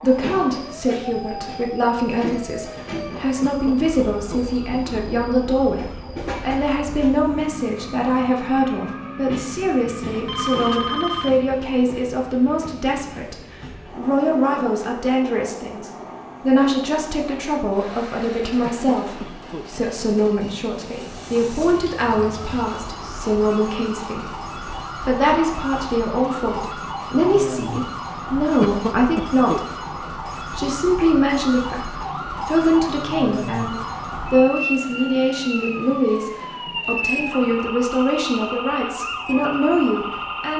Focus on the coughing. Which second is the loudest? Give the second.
29 s.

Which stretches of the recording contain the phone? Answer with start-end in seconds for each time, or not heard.
10.2-11.4.